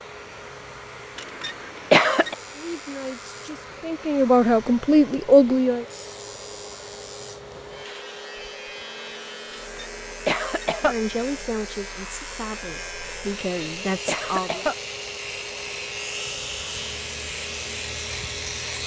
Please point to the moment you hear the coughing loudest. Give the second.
2 s.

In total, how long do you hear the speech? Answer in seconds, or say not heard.
7 s.